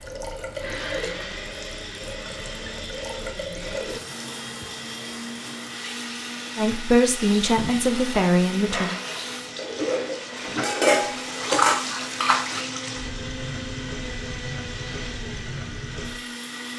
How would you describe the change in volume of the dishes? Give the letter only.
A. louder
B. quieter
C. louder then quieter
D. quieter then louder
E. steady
A.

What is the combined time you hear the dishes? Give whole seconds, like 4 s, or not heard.
5 s.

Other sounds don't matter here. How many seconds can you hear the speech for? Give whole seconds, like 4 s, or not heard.
2 s.